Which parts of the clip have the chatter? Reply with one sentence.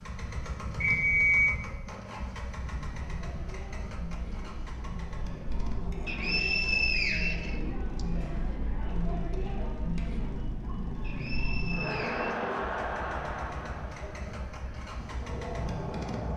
You can hear the chatter from 2.6 to 16.3 s.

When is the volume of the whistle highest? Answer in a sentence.
The loudest moment of the whistle is at 1 second.